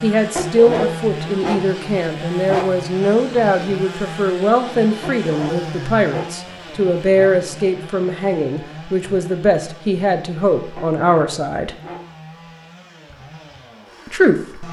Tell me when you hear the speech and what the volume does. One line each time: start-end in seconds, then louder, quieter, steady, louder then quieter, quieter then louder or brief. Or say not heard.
0.0-11.8 steady
14.1-14.6 brief.